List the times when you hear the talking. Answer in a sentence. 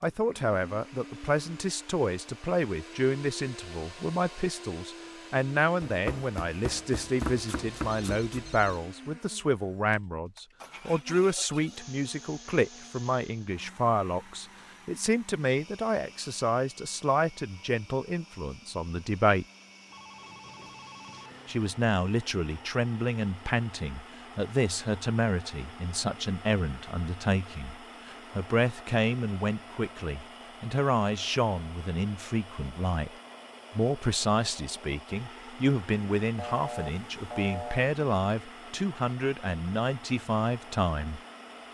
You can hear the talking from 0.0 to 19.4 s, from 21.4 to 27.8 s, from 28.4 to 33.1 s and from 33.8 to 41.2 s.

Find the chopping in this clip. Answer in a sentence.
You can hear the chopping from 5.8 to 8.3 s.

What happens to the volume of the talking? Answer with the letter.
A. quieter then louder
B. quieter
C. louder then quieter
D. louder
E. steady
E.